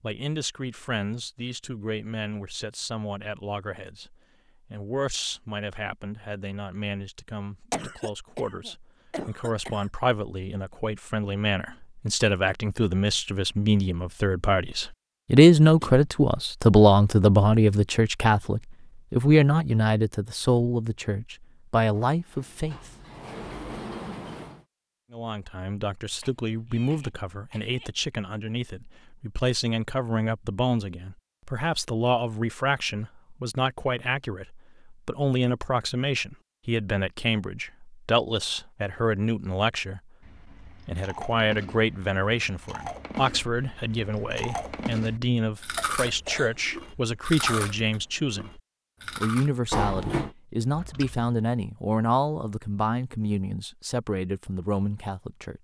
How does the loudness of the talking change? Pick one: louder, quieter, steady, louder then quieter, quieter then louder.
louder then quieter.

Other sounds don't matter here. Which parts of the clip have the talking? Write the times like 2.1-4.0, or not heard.
0.0-22.9, 25.1-55.5.